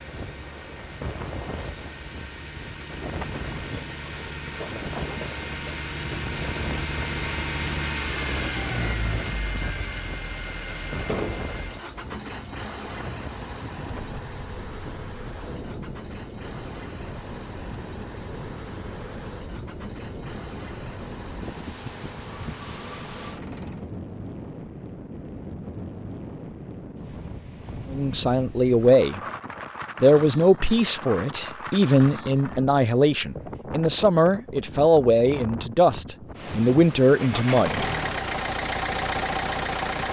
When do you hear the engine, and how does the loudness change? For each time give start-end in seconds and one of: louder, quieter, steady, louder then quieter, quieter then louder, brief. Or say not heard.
0.0-23.9 louder then quieter
37.1-40.0 brief.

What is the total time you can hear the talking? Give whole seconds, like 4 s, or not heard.
9 s.